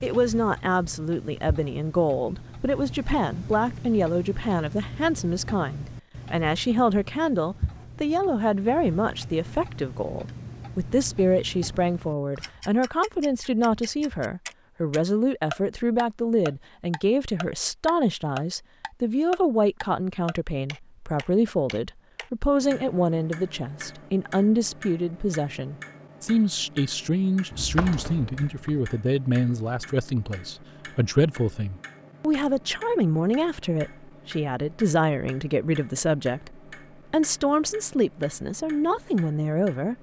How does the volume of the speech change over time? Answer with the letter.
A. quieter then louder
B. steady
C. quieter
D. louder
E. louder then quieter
B.